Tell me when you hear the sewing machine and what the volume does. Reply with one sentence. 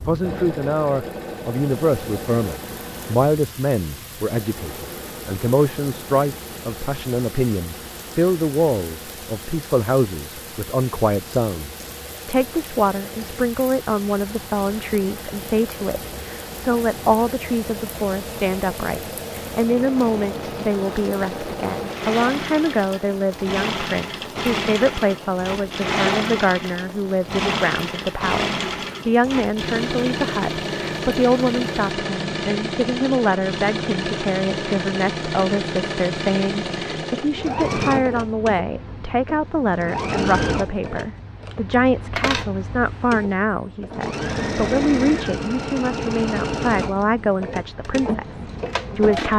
The sewing machine can be heard from 0.2 to 49.3 s, getting louder.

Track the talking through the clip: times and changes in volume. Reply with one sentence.
The talking can be heard from 0.1 to 49.3 s, at a steady volume.